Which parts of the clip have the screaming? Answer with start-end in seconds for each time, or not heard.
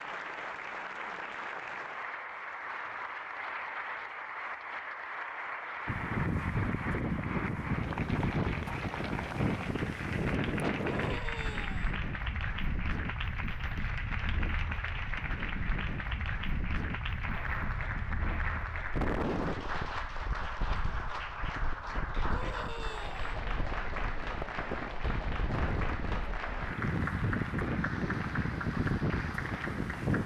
10.8-12.0, 22.2-23.4.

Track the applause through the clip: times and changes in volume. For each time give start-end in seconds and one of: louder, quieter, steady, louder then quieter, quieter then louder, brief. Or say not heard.
0.0-30.2 steady.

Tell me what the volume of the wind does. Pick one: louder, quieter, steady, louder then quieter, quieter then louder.
quieter then louder.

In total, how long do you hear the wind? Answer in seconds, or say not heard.
24 s.